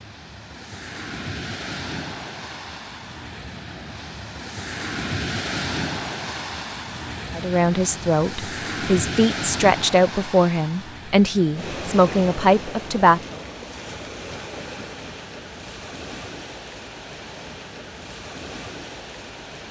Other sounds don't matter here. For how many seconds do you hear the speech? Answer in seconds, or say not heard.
6 s.